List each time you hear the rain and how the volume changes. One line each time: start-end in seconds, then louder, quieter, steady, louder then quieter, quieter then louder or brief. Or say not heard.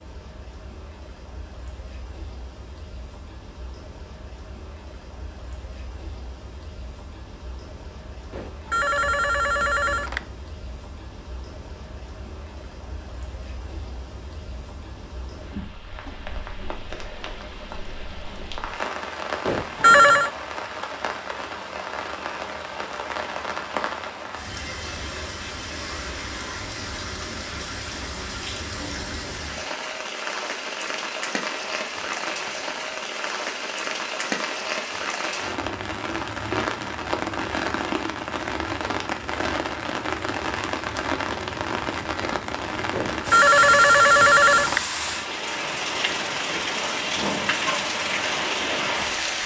0.0-49.4 louder.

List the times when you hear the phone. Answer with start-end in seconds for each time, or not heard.
8.3-10.3, 19.4-20.3, 42.9-44.9.